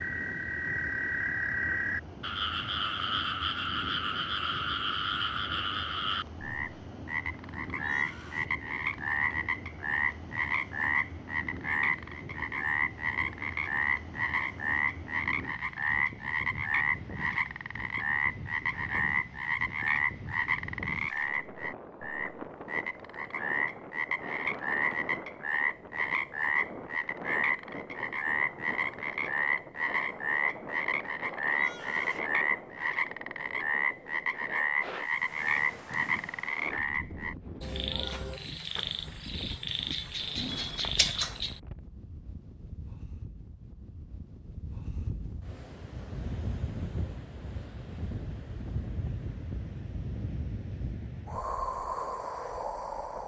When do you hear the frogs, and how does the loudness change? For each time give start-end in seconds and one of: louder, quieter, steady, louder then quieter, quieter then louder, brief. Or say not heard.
0.0-41.6 steady.